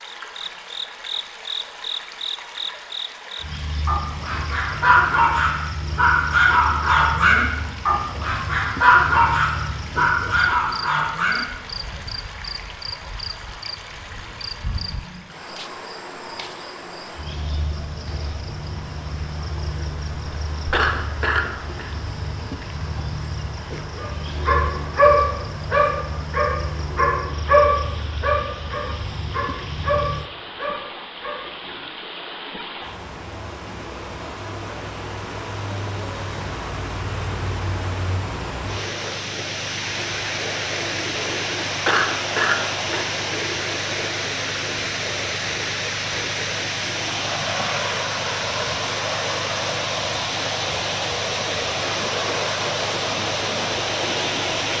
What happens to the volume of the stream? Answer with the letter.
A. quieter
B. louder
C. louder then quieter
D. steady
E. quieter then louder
B.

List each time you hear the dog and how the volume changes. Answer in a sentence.
You can hear the dog from 3.9 to 11.4 s, at a steady volume; and from 23.9 to 31.8 s, getting quieter.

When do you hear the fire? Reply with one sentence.
You can't hear the fire here.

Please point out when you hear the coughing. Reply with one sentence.
The coughing can be heard from 20.7 to 21.9 s and from 41.9 to 43.0 s.